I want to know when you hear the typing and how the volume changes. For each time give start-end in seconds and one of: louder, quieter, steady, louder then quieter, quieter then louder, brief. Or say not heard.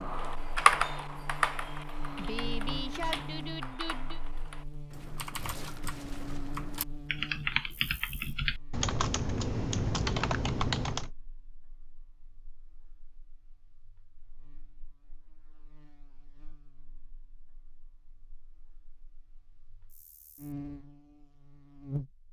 0.0-11.1 quieter then louder.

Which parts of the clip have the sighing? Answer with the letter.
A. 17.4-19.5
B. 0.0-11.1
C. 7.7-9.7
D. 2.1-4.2
D.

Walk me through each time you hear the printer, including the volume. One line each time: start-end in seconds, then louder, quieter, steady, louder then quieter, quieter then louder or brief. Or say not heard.
not heard.